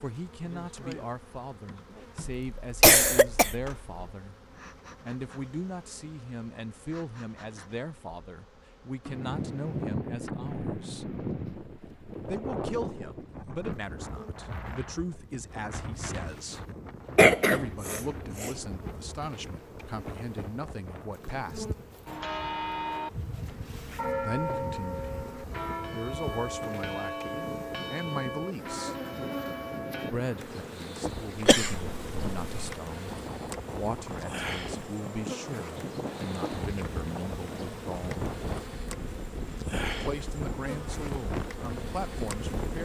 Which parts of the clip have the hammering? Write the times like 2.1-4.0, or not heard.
not heard.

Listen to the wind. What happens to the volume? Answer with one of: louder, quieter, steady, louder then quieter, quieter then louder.
quieter then louder.